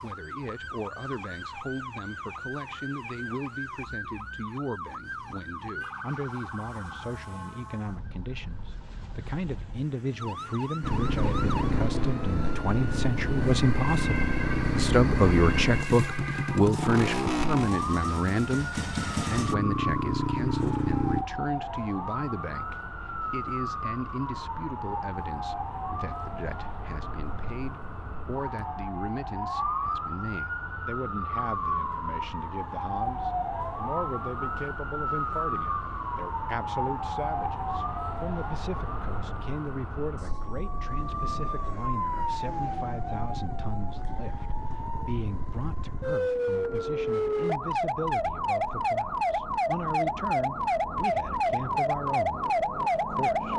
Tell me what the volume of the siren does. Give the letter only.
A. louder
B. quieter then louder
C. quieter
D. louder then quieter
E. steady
A.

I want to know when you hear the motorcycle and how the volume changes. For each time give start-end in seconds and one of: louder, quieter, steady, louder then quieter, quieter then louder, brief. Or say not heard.
10.8-21.2 steady.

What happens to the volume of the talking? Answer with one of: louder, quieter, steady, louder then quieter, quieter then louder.
louder then quieter.